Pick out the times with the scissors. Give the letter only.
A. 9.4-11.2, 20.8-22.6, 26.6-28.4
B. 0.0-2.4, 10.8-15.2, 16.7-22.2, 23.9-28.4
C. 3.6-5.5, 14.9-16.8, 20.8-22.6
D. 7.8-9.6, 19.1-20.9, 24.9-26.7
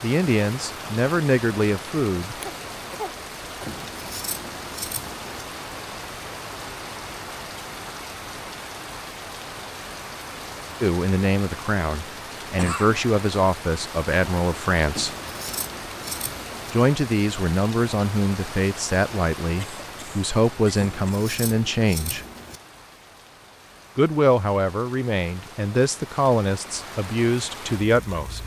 C.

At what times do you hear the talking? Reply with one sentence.
The talking can be heard from 0.0 to 2.4 s, from 10.8 to 15.2 s, from 16.7 to 22.2 s and from 23.9 to 28.4 s.